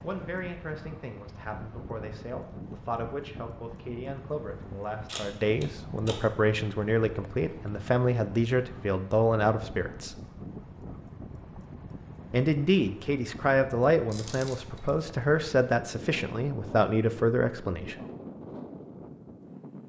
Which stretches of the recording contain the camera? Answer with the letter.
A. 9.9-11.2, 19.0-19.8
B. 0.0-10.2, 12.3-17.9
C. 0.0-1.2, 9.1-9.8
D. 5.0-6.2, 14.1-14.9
D.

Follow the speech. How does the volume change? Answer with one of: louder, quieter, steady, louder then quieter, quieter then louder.
louder.